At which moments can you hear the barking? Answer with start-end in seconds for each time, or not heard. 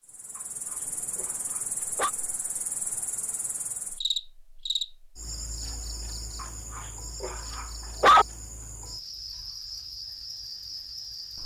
0.3-2.1, 6.4-8.2.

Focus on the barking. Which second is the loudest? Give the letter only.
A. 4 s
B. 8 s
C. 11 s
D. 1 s
B.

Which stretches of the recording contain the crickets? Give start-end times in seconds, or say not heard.
0.0-11.4.